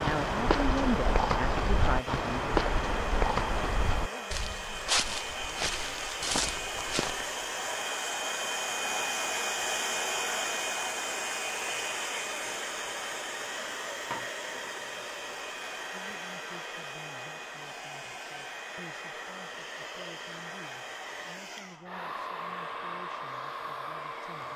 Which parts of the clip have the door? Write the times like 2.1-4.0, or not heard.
not heard.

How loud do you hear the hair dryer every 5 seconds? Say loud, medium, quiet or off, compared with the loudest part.
medium, loud, loud, medium, medium.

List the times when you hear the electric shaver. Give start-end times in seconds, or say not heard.
not heard.